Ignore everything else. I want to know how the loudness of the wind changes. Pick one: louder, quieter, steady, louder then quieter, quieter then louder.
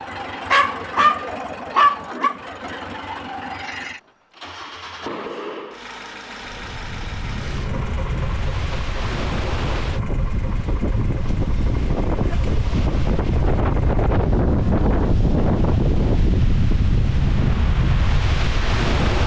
louder.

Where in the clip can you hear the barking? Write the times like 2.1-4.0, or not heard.
0.5-2.4.